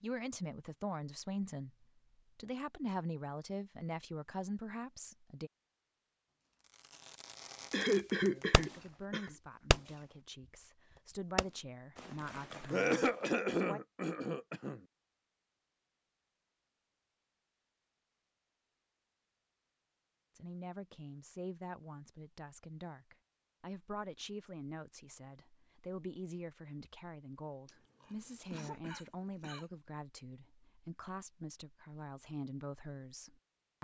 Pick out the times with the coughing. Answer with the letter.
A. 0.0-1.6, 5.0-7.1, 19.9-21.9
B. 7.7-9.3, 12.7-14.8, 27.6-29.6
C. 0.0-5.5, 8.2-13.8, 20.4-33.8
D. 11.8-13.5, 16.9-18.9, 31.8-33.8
B.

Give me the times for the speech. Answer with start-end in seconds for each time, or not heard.
0.0-5.5, 8.2-13.8, 20.4-33.8.